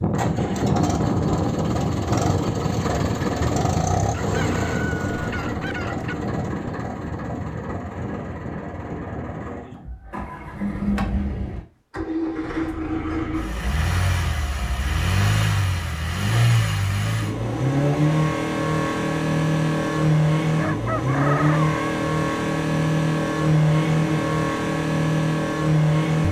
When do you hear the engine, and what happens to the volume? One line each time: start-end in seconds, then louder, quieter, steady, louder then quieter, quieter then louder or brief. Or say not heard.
0.0-26.2 quieter then louder.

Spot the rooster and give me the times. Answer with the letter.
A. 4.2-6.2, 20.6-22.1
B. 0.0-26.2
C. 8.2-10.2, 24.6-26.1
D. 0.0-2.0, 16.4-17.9
A.